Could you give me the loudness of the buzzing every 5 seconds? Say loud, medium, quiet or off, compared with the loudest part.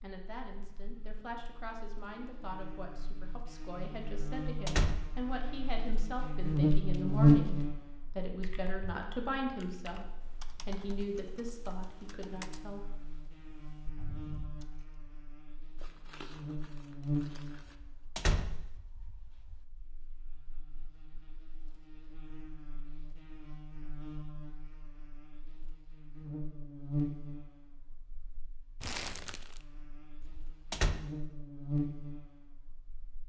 quiet, loud, quiet, quiet, quiet, quiet, quiet.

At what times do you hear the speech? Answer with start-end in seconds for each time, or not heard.
0.0-12.8.